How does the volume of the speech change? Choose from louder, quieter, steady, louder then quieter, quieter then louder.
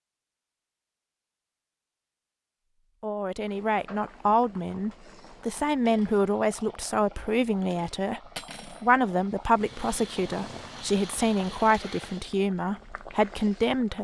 steady.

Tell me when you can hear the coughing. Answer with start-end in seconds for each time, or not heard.
not heard.